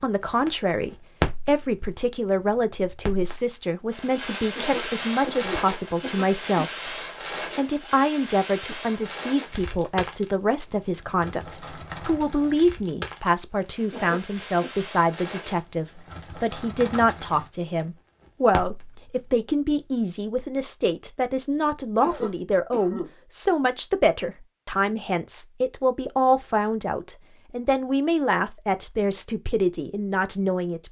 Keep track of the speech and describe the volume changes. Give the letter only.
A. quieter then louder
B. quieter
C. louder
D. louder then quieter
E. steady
E.